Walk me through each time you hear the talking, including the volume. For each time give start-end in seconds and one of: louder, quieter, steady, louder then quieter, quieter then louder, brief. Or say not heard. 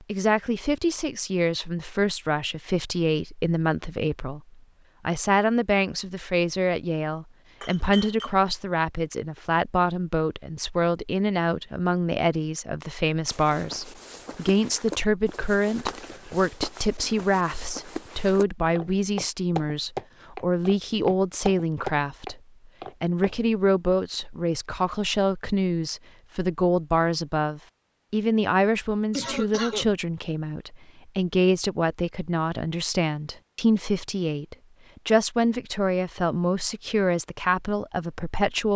0.1-22.4 steady
23.0-38.7 steady.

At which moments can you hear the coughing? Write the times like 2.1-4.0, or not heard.
29.1-29.9.